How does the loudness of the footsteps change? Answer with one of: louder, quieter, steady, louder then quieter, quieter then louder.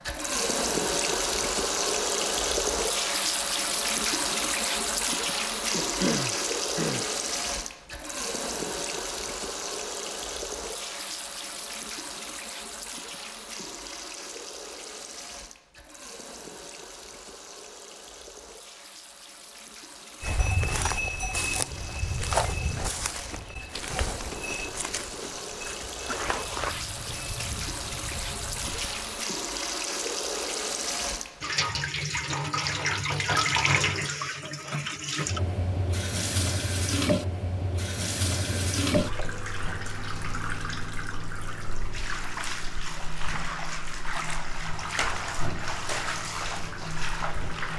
quieter.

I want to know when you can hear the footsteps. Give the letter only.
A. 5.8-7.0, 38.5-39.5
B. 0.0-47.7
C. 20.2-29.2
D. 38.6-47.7
C.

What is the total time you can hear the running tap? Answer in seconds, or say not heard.
48 s.